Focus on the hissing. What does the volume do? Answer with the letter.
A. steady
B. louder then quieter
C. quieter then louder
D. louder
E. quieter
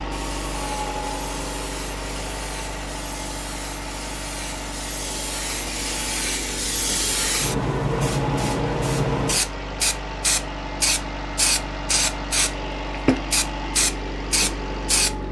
D.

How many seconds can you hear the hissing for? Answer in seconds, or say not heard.
15 s.